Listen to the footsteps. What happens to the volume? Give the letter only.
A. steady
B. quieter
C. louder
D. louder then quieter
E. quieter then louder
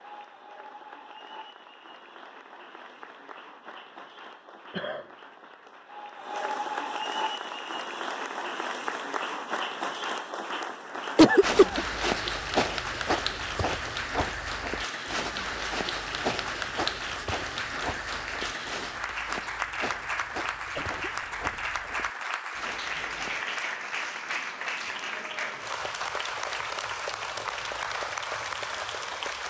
B.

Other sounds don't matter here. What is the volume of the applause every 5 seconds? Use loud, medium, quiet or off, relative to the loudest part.
quiet, loud, loud, loud, loud, loud.